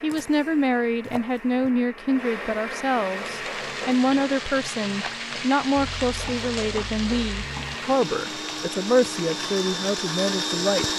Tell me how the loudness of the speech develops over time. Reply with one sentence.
The volume of the speech stays about the same.